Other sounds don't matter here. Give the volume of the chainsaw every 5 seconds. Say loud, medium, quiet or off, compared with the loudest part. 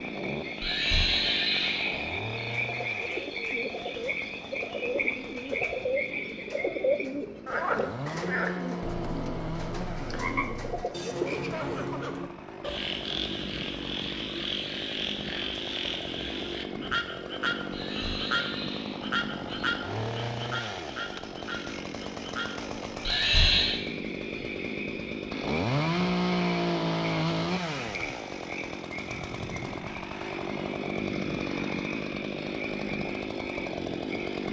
medium, medium, medium, medium, medium, loud, loud.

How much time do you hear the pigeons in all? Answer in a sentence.
You can hear the pigeons for 9 seconds altogether.